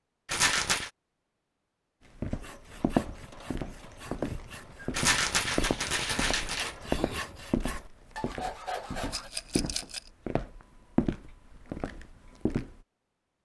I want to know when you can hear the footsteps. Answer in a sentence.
The footsteps can be heard from 2.1 to 12.8 s.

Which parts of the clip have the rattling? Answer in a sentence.
The rattling can be heard from 0.2 to 0.9 s, from 4.9 to 6.8 s and from 9.1 to 10.0 s.